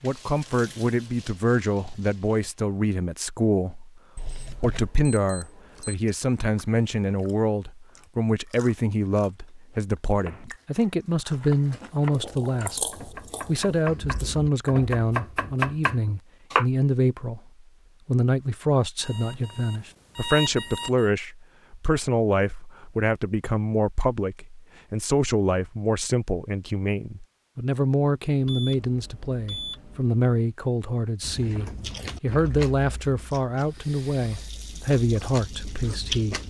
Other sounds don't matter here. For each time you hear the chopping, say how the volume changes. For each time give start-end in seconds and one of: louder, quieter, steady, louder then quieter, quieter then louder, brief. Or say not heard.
10.2-16.6 louder.